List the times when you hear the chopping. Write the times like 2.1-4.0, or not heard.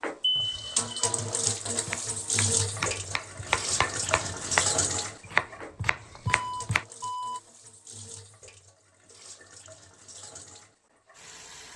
1.8-6.8.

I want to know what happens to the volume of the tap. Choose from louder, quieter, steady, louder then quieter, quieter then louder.
quieter.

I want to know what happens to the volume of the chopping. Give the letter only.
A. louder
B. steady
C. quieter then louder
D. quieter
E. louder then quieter
E.